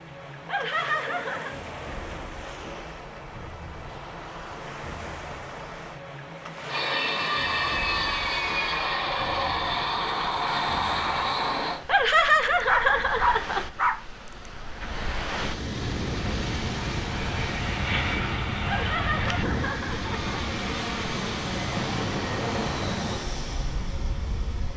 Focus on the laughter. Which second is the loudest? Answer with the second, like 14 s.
12 s.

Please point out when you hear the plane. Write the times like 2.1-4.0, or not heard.
6.7-11.8, 15.8-24.7.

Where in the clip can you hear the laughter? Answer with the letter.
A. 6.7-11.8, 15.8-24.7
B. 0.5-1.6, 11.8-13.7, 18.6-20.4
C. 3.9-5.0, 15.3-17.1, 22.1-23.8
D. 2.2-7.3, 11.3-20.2
B.